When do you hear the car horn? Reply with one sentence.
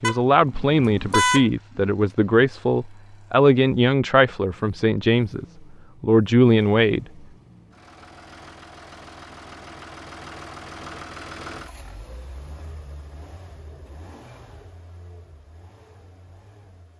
You can hear the car horn from 0.0 to 1.4 s.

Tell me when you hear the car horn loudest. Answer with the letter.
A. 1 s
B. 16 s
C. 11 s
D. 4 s
A.